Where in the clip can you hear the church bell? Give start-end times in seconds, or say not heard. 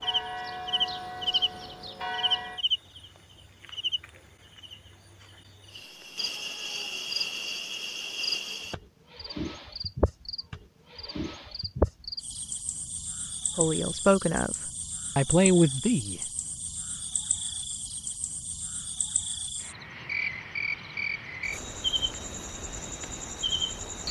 0.0-2.6.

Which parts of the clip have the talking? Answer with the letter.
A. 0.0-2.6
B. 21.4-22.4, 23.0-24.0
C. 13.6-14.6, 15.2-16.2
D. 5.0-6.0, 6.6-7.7
C.